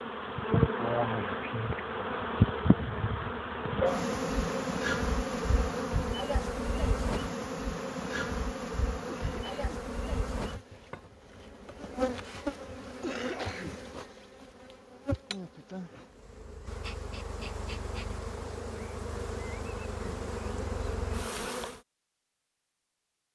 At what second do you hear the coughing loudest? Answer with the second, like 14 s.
13 s.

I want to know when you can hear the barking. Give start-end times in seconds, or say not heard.
not heard.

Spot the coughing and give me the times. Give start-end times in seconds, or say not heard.
9.1-9.9, 13.0-13.8.